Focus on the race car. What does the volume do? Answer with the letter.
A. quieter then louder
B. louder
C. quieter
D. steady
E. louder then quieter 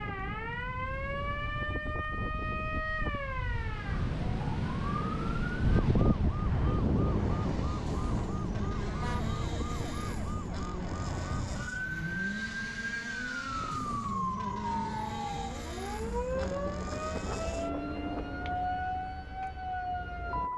D.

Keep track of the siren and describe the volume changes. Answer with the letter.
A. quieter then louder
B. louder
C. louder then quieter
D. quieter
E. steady
E.